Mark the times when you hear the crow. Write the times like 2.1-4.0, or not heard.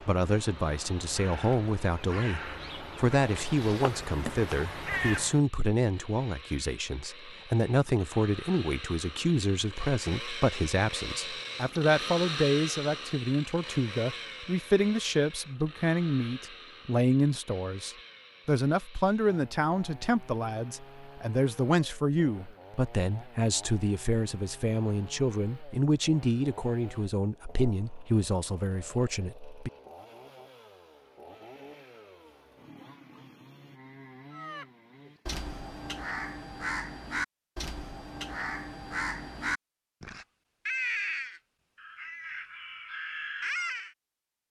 0.0-5.4, 34.3-44.0.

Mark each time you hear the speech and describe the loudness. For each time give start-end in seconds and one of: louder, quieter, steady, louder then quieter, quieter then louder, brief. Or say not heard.
0.0-29.7 steady.